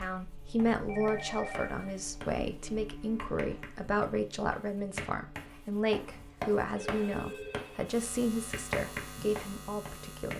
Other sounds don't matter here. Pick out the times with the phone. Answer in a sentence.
You can hear the phone from 0.8 to 2.1 s and from 6.8 to 7.9 s.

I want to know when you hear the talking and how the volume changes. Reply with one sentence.
The talking can be heard from 0.0 to 10.3 s, at a steady volume.